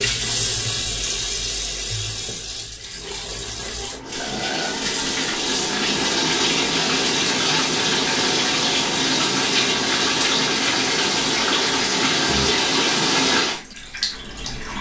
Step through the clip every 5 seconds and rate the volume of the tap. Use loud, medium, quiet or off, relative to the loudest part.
medium, loud, loud.